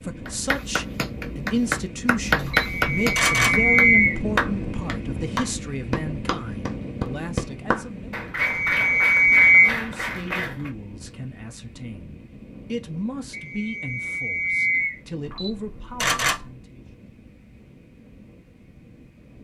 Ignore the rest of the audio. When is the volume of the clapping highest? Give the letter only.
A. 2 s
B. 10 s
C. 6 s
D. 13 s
A.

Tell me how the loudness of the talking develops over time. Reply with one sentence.
The loudness of the talking goes down.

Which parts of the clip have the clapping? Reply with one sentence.
You can hear the clapping from 0.2 to 10.7 s.